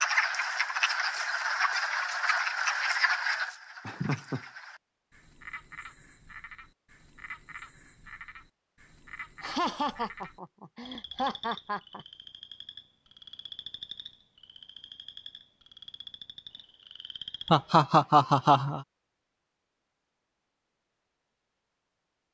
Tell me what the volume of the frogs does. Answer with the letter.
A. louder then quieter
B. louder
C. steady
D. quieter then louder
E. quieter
E.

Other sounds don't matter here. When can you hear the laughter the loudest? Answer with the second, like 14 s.
18 s.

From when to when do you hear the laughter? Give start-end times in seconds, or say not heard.
3.9-4.4, 9.4-12.1, 17.5-18.8.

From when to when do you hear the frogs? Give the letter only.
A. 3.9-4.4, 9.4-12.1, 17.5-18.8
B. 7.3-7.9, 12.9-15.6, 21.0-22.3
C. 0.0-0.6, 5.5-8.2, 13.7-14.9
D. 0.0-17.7
D.